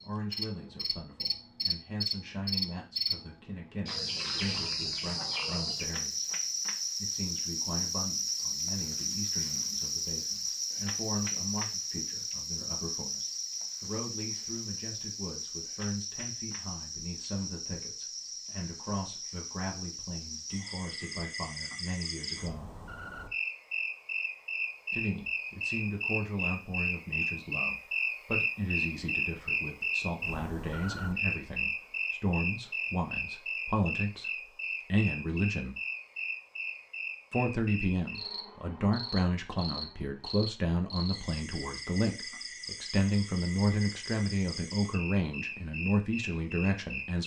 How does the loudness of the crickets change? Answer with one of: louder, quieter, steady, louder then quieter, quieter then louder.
quieter.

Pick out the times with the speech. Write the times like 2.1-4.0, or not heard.
0.0-6.3, 7.0-22.7, 24.9-34.3, 34.9-35.8, 37.3-47.2.